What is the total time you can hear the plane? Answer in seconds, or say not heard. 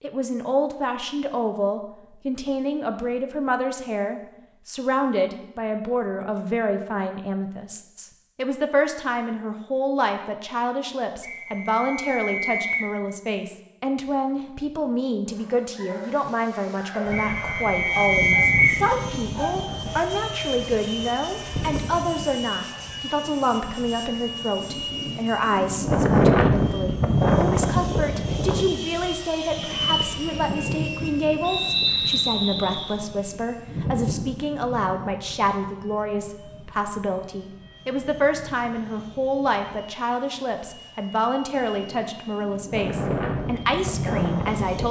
28 s.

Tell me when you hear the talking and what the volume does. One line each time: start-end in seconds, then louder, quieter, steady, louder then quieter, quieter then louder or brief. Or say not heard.
0.0-44.8 steady.